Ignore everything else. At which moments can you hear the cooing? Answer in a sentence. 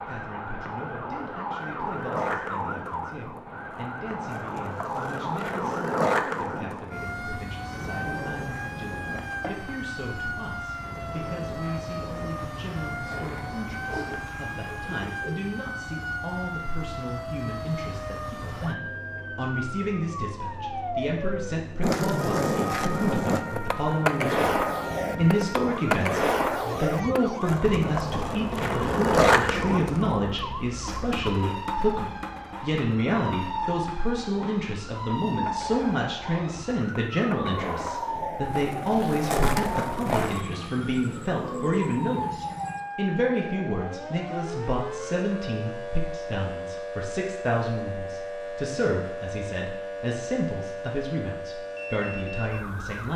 You can hear the cooing from 13.8 to 15.4 s and from 40.0 to 42.8 s.